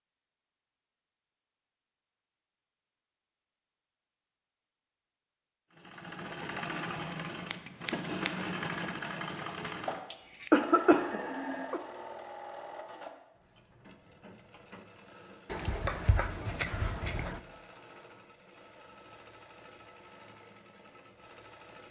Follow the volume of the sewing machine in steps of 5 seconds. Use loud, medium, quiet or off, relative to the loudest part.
off, loud, medium, quiet, quiet.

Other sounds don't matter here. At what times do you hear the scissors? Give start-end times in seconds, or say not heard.
7.1-8.3, 15.5-17.4.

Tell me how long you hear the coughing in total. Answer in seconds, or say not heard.
2 s.